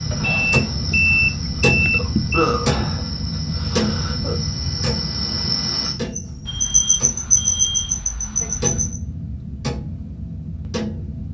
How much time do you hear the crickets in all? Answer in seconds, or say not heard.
9 s.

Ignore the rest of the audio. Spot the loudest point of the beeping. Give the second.
1 s.